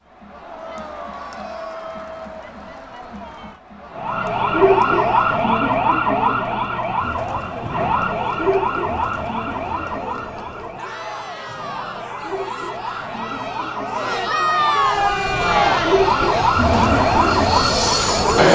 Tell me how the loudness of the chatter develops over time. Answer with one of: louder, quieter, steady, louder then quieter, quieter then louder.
louder.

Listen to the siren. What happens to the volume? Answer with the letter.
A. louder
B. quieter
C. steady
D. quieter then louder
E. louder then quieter
D.